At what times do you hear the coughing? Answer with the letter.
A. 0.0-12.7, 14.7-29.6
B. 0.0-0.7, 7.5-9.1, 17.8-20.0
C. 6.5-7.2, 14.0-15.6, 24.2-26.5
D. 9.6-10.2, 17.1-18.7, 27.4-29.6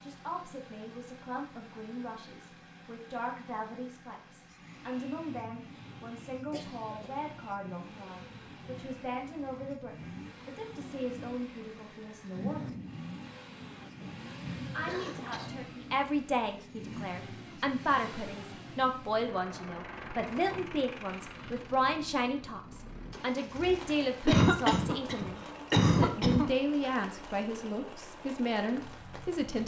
C.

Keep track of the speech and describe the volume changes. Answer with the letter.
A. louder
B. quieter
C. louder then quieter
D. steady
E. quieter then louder
A.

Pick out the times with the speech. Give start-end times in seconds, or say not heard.
0.0-12.7, 14.7-29.6.